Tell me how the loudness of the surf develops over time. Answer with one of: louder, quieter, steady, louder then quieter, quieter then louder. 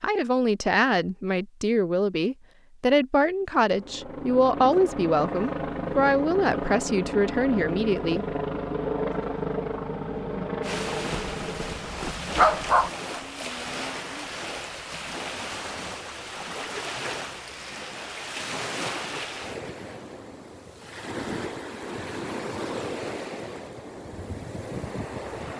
steady.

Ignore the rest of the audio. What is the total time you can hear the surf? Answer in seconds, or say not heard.
15 s.